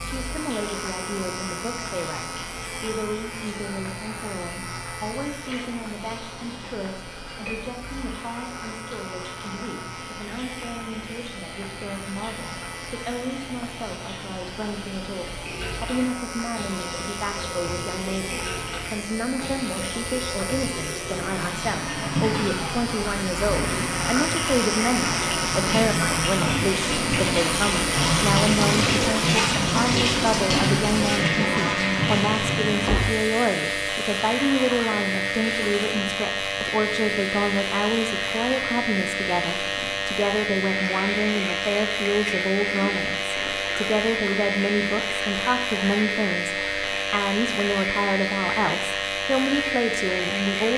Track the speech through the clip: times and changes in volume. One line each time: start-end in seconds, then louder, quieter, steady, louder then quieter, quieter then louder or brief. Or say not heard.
0.0-50.7 louder.